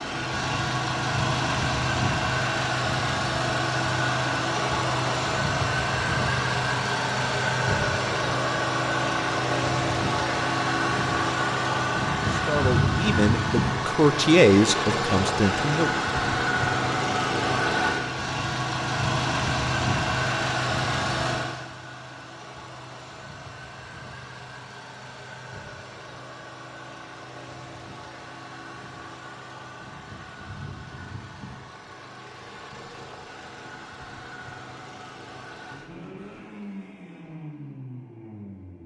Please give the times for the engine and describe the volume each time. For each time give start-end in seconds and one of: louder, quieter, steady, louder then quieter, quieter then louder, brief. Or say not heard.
0.0-38.8 quieter.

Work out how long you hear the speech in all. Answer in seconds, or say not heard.
4 s.